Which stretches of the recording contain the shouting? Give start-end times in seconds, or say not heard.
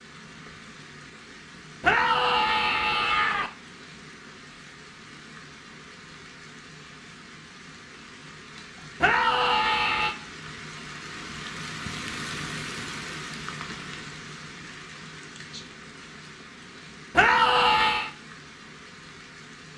1.8-3.5, 9.0-10.2, 17.1-18.1.